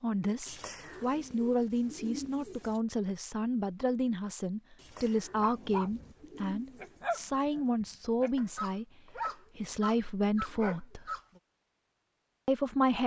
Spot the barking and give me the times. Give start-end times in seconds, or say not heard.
5.3-6.2, 6.8-11.4.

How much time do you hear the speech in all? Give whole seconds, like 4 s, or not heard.
12 s.